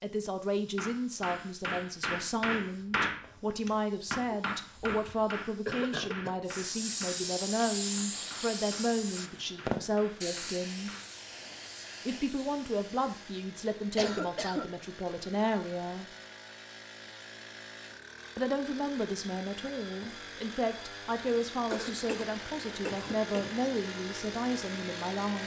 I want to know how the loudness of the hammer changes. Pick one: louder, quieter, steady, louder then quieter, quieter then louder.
quieter.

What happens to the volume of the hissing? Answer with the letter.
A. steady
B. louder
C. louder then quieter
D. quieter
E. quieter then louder
C.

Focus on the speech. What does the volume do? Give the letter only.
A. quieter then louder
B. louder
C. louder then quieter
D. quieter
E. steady
E.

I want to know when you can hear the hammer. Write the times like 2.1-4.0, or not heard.
0.8-11.2.